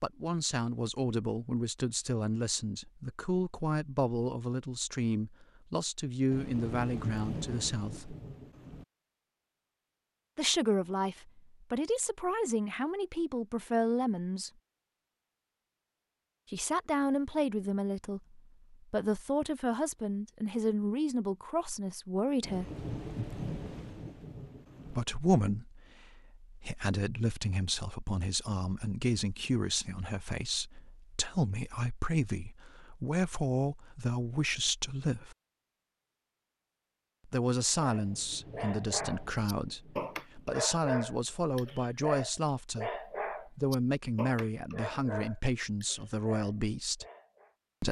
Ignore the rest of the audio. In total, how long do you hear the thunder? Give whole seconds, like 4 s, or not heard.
8 s.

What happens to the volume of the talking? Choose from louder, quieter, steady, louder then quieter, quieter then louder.
steady.